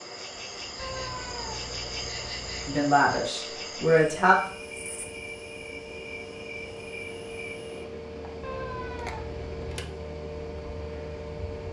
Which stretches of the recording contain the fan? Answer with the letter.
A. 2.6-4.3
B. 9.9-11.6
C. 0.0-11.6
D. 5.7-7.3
C.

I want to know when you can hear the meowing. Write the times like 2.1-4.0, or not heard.
0.8-2.8, 8.4-9.9.